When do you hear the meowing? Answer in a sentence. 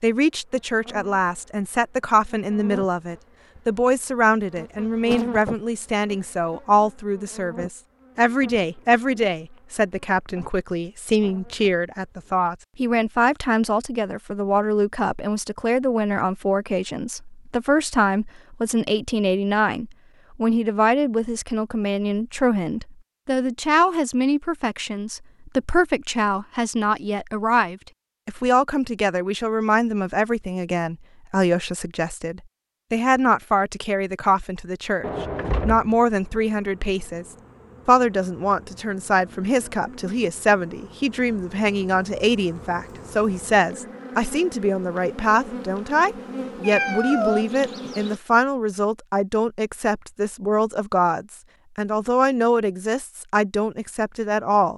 The meowing can be heard from 46.6 to 47.5 s.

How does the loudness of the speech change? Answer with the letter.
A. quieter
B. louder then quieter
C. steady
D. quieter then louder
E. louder
C.